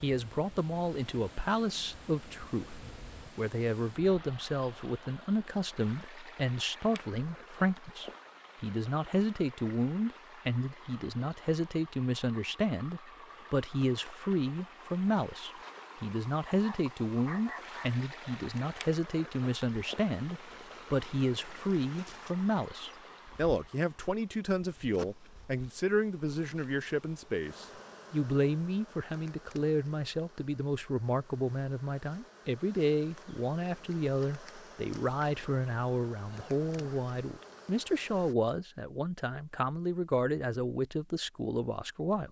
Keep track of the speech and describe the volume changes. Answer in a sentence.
The volume of the speech stays about the same.